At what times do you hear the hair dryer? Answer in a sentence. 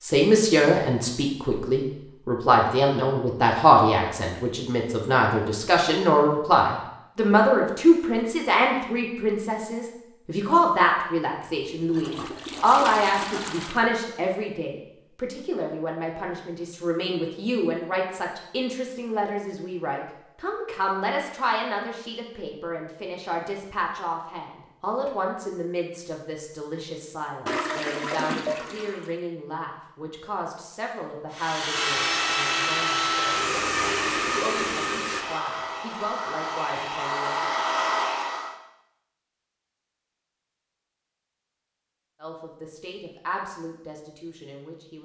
The hair dryer can be heard from 31.3 to 38.5 s.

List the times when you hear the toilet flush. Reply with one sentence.
You can hear the toilet flush from 11.9 to 13.8 s and from 27.4 to 29.1 s.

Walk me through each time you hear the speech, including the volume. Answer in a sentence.
You can hear the speech from 0.0 to 37.5 s, getting quieter; and briefly from 42.2 to 45.0 s.